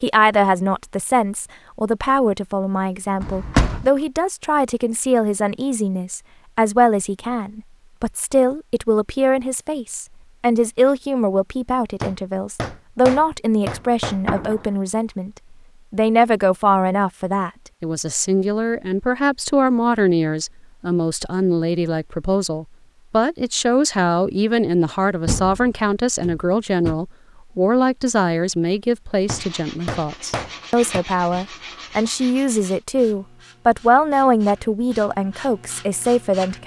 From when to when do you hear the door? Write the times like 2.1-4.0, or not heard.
3.2-3.9, 13.7-14.8, 25.2-26.9.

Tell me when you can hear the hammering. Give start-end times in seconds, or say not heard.
12.0-14.3, 29.2-31.0.